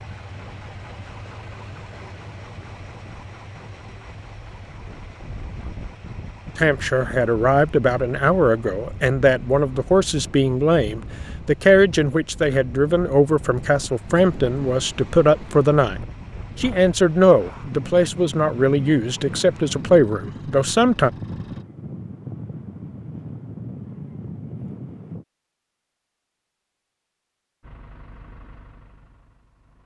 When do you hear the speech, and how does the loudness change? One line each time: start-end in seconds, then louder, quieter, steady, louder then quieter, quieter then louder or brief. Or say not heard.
6.5-21.1 steady.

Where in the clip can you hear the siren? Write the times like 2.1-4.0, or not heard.
not heard.